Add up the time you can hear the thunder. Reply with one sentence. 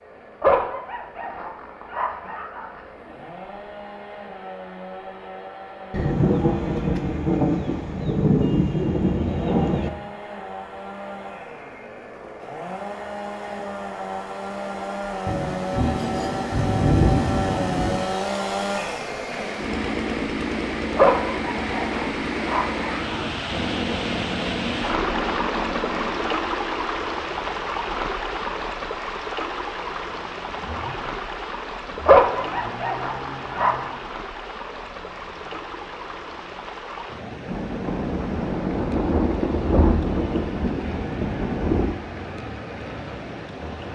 The thunder can be heard for 11 seconds in total.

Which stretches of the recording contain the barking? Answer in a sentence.
You can hear the barking from 0.4 to 2.8 s, from 20.9 to 23.8 s and from 32.0 to 33.9 s.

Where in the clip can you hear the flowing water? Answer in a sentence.
You can hear the flowing water from 19.3 to 43.9 s.